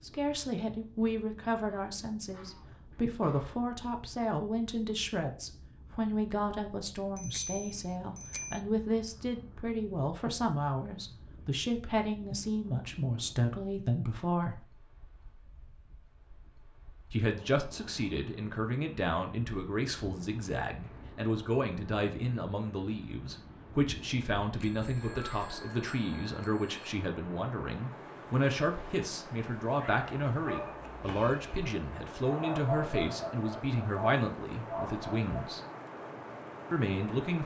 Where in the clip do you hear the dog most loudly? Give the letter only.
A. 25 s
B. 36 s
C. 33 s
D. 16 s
C.